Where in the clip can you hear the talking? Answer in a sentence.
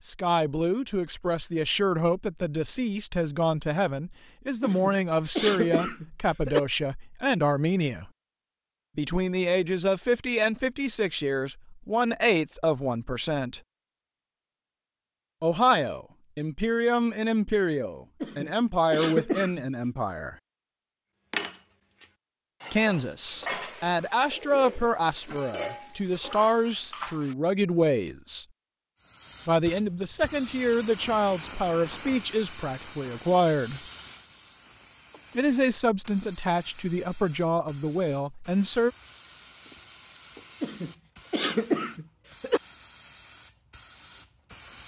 The talking can be heard from 0.1 to 8.1 s, from 8.9 to 13.6 s, from 15.4 to 20.4 s, from 22.7 to 28.4 s, from 29.4 to 33.8 s and from 35.4 to 38.9 s.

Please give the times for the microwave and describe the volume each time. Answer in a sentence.
You can't hear the microwave here.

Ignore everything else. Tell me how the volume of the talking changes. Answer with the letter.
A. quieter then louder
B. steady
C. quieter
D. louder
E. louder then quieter
B.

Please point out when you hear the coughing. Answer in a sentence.
You can hear the coughing from 4.6 to 6.6 s, from 18.2 to 19.6 s and from 40.6 to 42.6 s.